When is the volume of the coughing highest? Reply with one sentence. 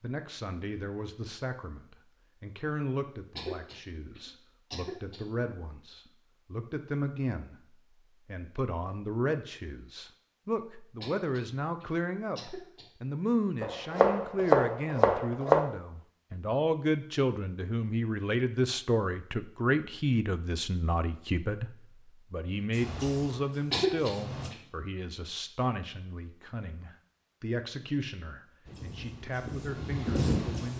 The volume of the coughing peaks at 24 seconds.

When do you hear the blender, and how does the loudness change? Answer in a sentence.
The blender can't be heard in this clip.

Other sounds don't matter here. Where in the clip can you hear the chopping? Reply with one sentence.
The chopping can be heard from 13.6 to 15.6 s.